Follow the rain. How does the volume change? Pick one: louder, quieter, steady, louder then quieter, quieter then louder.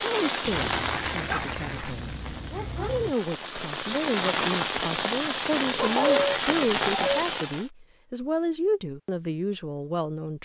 quieter then louder.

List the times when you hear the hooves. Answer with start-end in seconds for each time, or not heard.
not heard.